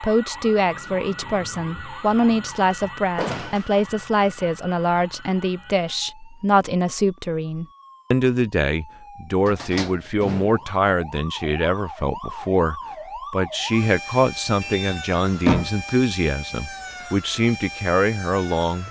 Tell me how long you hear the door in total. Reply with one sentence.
The door can be heard for 3 seconds in total.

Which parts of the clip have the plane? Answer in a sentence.
You can't hear the plane here.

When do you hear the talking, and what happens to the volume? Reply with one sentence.
You can hear the talking from 0.0 to 18.8 s, at a steady volume.